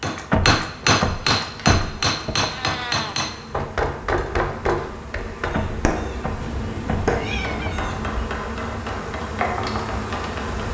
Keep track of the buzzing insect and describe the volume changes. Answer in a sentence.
The volume of the buzzing insect goes up.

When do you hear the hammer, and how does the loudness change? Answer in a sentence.
You can hear the hammer from 0.0 to 10.6 s, getting quieter.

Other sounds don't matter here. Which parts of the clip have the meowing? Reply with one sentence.
The meowing can be heard from 2.4 to 3.1 s and from 6.4 to 8.2 s.